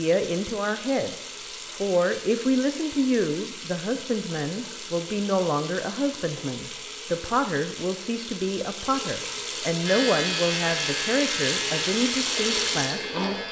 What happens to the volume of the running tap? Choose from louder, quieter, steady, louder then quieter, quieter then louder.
louder.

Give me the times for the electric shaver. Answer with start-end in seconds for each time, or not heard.
9.8-13.4.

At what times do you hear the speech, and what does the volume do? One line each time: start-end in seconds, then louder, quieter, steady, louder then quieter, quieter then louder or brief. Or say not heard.
0.0-13.4 steady.